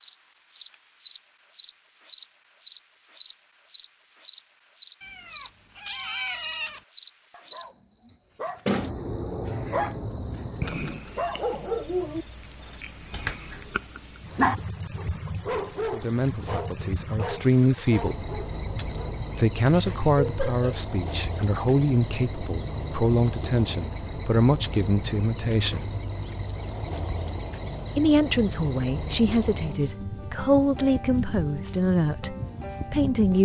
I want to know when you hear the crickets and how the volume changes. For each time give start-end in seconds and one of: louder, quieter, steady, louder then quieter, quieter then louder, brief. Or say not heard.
0.0-33.4 quieter.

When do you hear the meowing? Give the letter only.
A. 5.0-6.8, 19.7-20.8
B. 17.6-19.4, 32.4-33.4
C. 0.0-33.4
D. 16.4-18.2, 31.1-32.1
A.